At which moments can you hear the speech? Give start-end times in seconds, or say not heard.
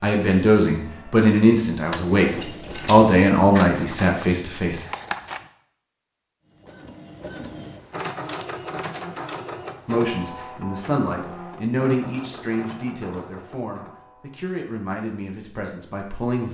0.0-4.8, 9.8-16.4.